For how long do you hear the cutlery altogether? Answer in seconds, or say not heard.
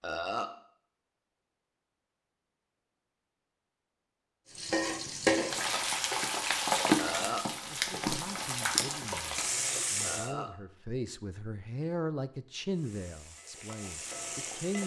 not heard.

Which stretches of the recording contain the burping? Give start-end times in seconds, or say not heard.
0.0-0.5, 7.0-7.5, 10.0-10.5.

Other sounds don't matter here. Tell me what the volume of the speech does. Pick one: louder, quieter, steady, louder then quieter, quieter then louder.
louder then quieter.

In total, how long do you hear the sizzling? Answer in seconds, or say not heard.
8 s.